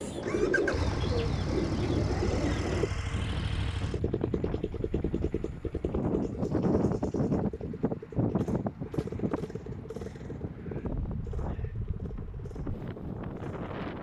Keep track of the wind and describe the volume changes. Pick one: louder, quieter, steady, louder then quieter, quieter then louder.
louder then quieter.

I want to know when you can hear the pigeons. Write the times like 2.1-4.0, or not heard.
0.0-2.9.